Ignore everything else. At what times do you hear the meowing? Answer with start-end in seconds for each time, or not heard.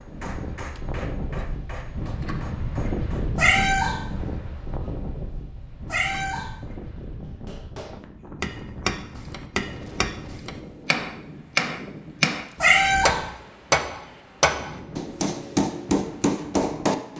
3.4-4.0, 5.8-6.5, 12.6-13.2.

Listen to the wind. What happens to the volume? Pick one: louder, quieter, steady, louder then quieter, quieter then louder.
quieter.